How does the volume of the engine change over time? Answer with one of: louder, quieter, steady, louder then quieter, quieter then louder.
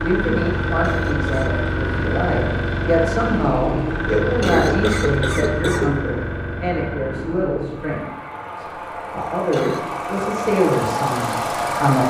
quieter then louder.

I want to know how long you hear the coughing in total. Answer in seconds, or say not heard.
3 s.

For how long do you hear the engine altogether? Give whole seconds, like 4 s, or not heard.
12 s.